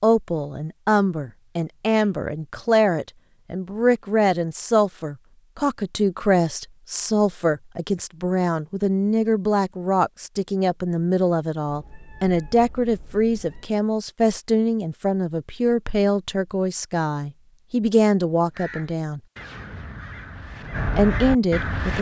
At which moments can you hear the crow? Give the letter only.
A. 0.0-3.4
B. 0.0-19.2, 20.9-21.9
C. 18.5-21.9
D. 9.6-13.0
C.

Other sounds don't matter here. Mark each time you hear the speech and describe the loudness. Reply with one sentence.
The speech can be heard from 0.0 to 19.2 s, at a steady volume; and briefly from 20.9 to 21.9 s.